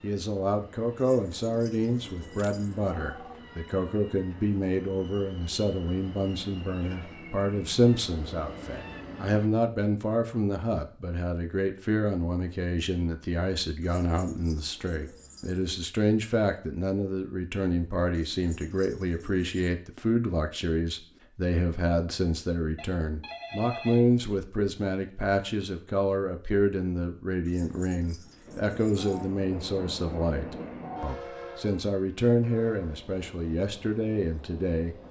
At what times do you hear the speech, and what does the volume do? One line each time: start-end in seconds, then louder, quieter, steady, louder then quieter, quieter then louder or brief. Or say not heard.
0.0-35.0 steady.